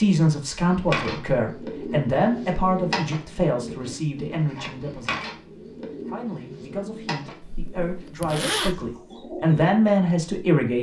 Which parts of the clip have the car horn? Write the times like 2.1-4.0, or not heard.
not heard.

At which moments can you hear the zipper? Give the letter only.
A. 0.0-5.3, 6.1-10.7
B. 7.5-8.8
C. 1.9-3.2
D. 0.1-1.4
B.